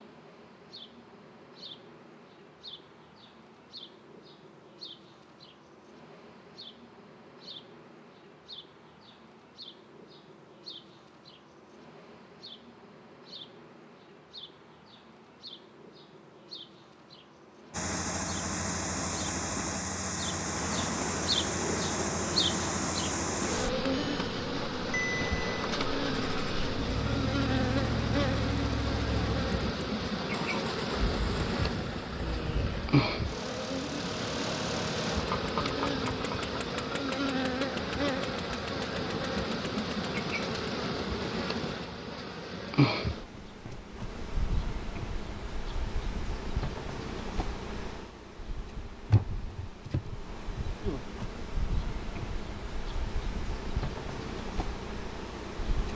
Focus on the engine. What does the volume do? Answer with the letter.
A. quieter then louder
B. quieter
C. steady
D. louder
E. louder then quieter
B.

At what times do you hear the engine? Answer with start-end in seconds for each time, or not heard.
17.7-40.6.